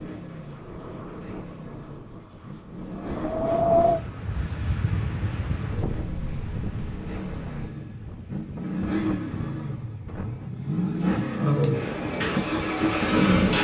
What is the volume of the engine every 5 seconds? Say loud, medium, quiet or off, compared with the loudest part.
quiet, medium, loud.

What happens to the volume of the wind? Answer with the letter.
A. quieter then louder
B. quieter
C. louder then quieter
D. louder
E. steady
C.